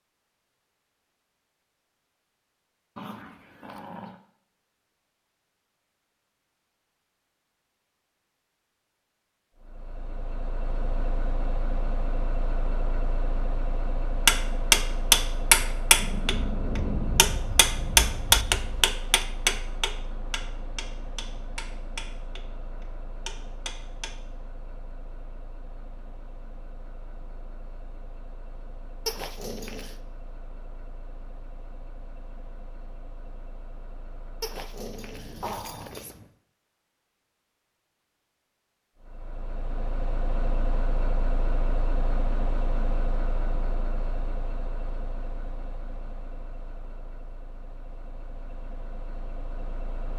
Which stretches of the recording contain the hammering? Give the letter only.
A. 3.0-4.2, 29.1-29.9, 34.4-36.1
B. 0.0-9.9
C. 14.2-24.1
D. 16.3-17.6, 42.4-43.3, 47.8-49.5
C.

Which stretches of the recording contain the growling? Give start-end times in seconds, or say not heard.
3.0-4.2, 29.1-29.9, 34.4-36.1.